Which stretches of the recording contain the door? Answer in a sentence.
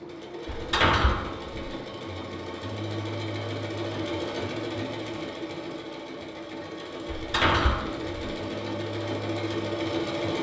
The door can be heard from 0.5 to 1.6 s and from 7.0 to 8.2 s.